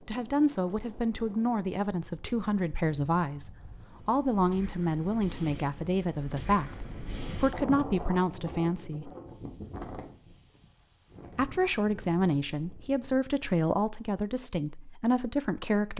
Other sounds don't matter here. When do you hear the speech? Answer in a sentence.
The speech can be heard from 0.1 to 9.1 s and from 11.3 to 15.9 s.